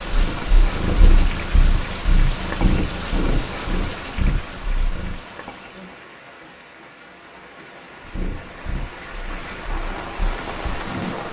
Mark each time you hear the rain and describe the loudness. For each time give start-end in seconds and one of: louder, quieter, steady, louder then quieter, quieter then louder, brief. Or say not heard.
0.0-11.2 quieter then louder.